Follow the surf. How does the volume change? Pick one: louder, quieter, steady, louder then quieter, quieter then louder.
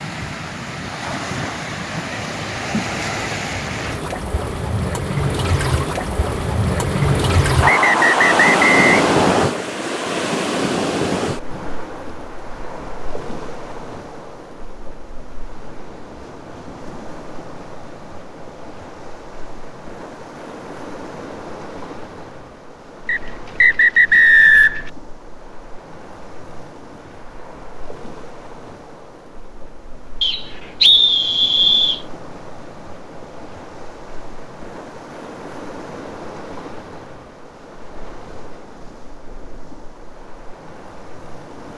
quieter.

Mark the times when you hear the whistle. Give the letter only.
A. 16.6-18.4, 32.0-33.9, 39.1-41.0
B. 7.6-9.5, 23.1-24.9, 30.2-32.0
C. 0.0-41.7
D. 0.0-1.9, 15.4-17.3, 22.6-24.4
B.